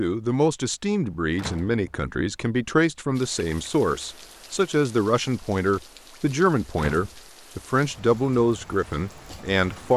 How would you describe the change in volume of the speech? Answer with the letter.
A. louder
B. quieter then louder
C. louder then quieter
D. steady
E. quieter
D.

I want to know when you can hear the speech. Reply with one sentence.
The speech can be heard from 0.0 to 9.9 s.